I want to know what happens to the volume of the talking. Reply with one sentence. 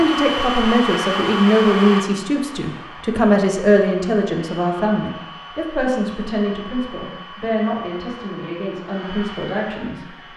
The loudness of the talking goes down.